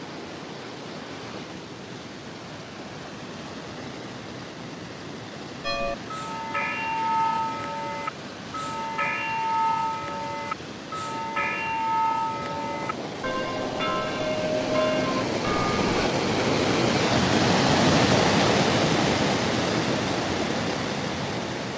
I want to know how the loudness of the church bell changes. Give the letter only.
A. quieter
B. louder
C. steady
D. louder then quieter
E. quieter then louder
C.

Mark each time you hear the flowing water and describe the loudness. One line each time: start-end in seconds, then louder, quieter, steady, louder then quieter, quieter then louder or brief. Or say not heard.
0.0-21.7 louder.